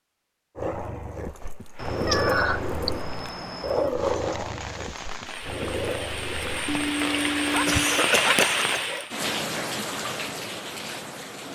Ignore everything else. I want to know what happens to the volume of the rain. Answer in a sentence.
The volume of the rain goes up, then down.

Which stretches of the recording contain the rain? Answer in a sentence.
The rain can be heard from 3.9 to 11.4 s.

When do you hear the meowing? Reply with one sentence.
The meowing can be heard from 1.8 to 3.9 s and from 6.7 to 7.8 s.